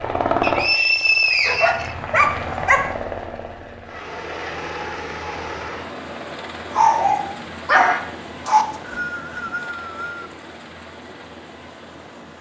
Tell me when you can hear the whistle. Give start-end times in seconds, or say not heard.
0.4-1.9, 8.4-10.3.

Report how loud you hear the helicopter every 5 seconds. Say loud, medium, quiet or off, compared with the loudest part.
loud, medium, quiet.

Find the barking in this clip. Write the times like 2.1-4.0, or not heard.
1.4-3.0, 6.7-8.7.